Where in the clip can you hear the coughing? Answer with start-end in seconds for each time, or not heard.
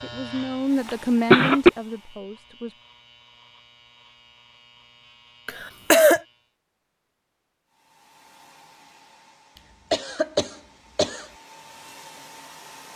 0.8-1.7, 5.5-6.2, 9.9-11.2.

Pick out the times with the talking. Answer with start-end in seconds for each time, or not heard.
0.0-2.8.